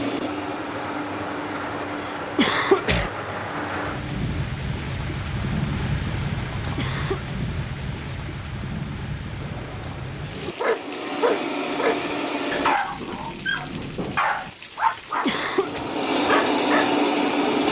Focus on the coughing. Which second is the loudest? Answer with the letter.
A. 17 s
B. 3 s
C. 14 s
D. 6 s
B.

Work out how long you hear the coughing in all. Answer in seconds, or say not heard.
3 s.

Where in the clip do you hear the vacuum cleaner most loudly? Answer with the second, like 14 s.
17 s.